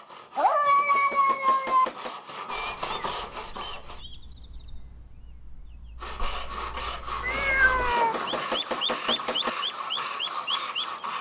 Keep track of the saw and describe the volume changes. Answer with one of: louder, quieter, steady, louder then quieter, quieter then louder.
louder.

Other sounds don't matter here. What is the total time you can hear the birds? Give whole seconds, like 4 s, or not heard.
9 s.